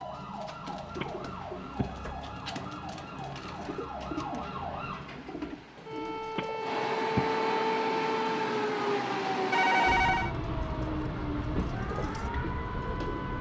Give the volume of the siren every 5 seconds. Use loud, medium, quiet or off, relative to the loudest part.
medium, loud, medium.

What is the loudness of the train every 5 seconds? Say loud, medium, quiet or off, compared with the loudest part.
quiet, loud, loud.